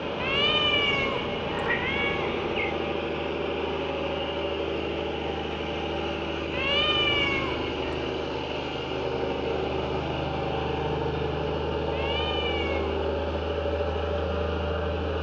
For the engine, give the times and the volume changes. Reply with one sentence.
You can hear the engine from 0.0 to 15.1 s, at a steady volume.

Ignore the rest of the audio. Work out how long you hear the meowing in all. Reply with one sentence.
The meowing can be heard for 5 seconds in total.